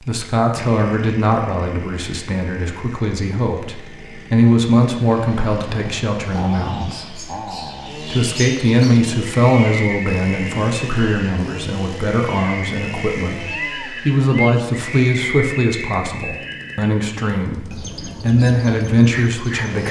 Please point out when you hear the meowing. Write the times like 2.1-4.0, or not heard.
13.5-14.6.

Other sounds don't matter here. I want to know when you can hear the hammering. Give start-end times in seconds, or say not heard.
not heard.